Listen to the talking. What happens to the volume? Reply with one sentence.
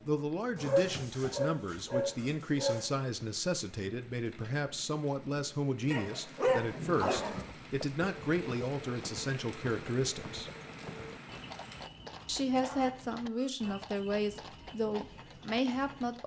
The loudness of the talking stays about the same.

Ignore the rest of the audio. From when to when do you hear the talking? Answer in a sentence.
You can hear the talking from 0.1 to 10.5 s and from 12.2 to 16.2 s.